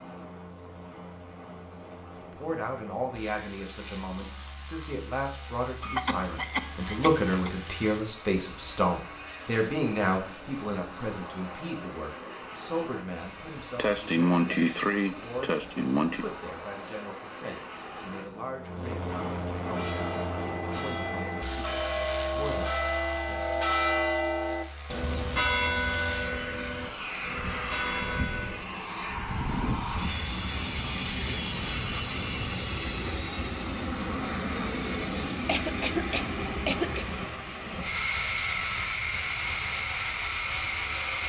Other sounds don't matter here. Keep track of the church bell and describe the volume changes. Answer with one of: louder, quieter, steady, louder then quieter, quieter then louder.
louder then quieter.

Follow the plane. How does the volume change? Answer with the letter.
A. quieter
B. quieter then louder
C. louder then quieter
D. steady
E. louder
E.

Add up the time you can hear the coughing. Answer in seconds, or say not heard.
6 s.